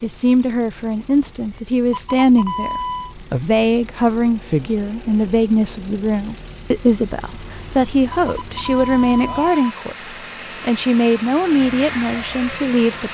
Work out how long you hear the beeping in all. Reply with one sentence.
The beeping can be heard for 3 seconds in total.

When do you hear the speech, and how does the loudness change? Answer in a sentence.
The speech can be heard from 0.0 to 13.0 s, at a steady volume.